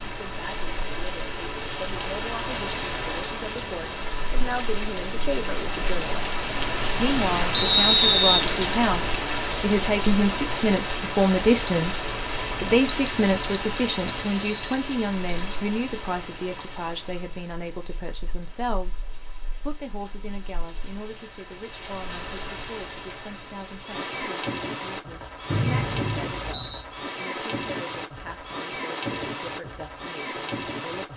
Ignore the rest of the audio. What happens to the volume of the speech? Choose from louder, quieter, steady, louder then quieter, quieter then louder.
louder then quieter.